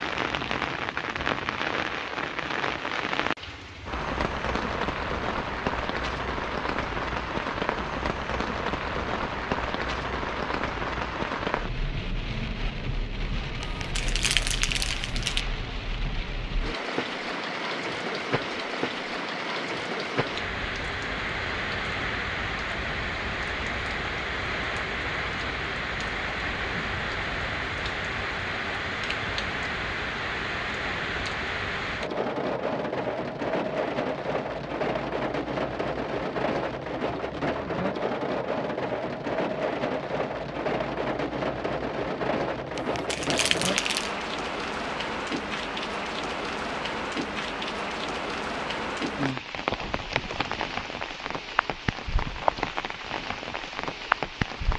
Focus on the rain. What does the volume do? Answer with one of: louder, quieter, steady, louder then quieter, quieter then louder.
steady.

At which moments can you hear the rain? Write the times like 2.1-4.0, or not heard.
0.0-54.7.